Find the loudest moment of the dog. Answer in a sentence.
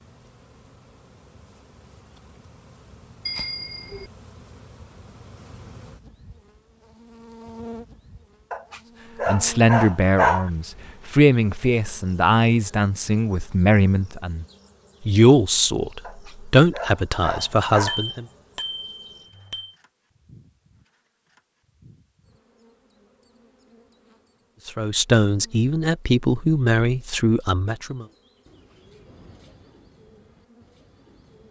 The volume of the dog peaks at 10 seconds.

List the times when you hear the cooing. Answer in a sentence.
You can hear the cooing from 28.0 to 31.4 s.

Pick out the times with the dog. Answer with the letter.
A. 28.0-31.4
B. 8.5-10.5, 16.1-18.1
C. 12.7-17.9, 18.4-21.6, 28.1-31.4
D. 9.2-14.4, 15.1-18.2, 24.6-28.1
B.